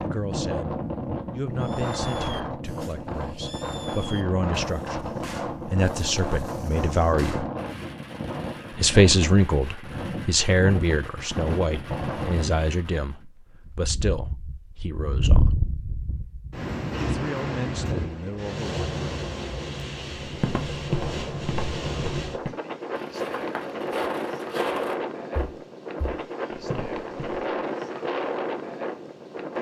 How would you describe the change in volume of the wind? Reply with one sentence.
The loudness of the wind stays about the same.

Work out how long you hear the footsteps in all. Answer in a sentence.
You can hear the footsteps for 7 seconds altogether.